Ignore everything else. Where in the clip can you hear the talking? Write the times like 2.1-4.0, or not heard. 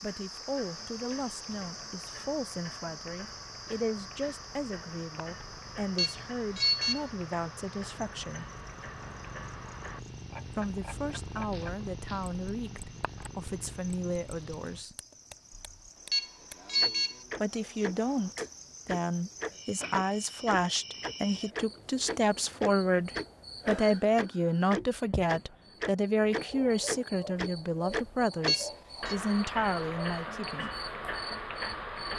0.0-8.4, 10.5-14.9, 17.4-30.7.